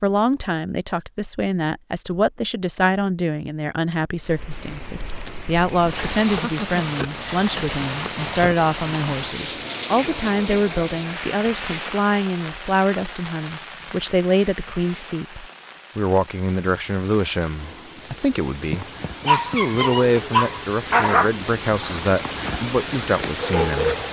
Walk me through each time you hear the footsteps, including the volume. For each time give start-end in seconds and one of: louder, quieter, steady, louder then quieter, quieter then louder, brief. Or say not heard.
not heard.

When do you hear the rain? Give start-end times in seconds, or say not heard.
4.2-24.0.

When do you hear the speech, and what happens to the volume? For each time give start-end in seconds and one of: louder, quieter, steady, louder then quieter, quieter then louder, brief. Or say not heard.
0.0-23.9 steady.